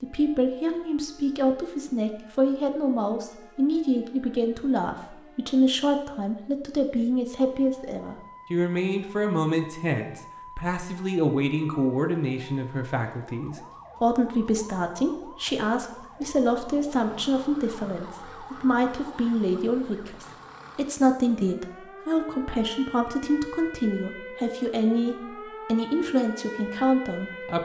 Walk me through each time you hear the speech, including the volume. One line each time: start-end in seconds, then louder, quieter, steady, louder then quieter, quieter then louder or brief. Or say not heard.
0.0-27.6 steady.